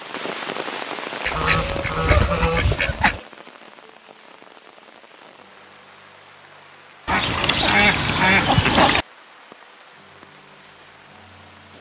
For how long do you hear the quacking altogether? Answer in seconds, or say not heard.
4 s.